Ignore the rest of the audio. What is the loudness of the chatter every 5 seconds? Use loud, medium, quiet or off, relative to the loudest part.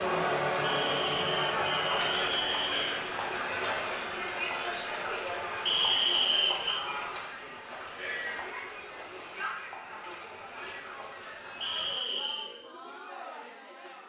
loud, medium, quiet.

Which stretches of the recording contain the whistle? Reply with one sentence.
You can hear the whistle from 0.6 to 3.0 s, from 5.7 to 6.8 s and from 11.6 to 12.5 s.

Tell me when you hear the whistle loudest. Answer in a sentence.
The loudest moment of the whistle is at 6 seconds.